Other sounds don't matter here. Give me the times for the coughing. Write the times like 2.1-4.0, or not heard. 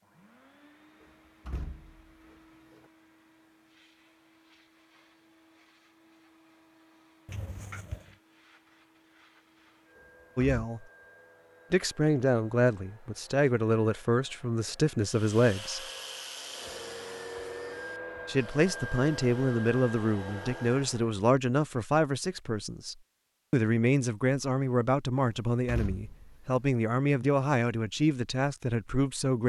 7.2-8.2.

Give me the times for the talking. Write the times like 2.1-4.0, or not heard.
10.3-10.8, 11.7-15.8, 18.2-29.4.